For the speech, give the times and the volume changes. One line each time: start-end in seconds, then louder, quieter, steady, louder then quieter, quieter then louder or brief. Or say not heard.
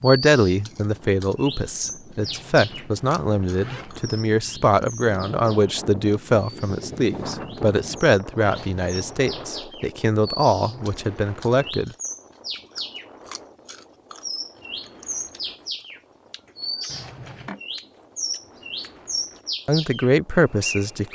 0.0-11.9 steady
19.6-21.1 brief.